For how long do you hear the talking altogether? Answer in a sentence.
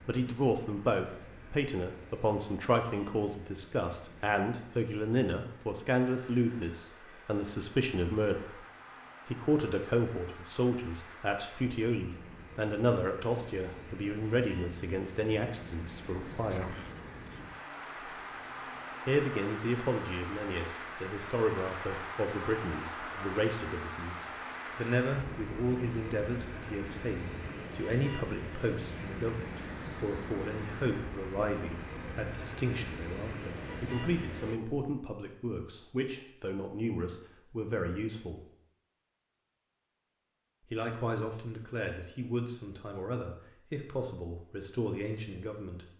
You can hear the talking for 41 seconds altogether.